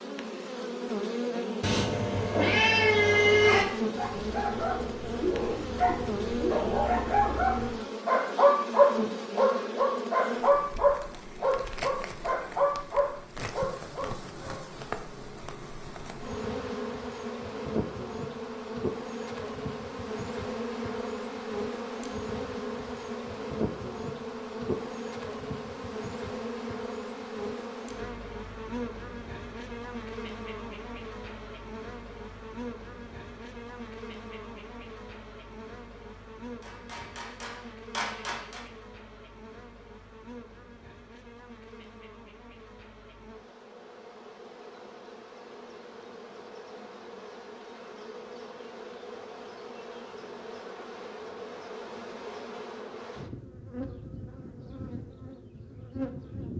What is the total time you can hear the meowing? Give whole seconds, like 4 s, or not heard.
2 s.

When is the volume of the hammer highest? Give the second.
38 s.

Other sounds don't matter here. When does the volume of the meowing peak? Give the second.
3 s.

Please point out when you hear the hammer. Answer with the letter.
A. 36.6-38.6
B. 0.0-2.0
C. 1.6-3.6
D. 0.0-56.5
A.